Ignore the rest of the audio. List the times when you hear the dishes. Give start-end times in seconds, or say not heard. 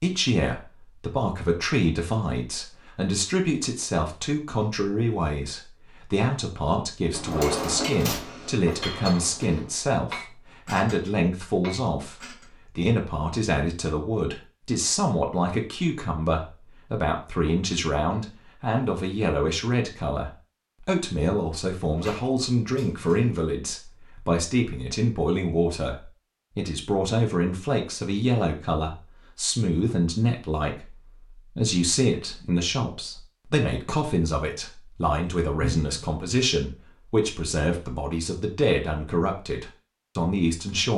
7.2-12.5.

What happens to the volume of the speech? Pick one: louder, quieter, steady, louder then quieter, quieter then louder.
steady.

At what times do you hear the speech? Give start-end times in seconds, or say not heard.
0.0-40.9.